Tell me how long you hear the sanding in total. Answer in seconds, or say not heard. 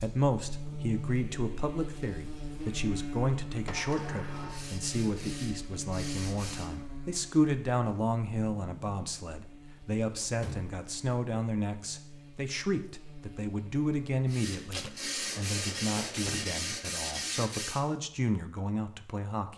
6 s.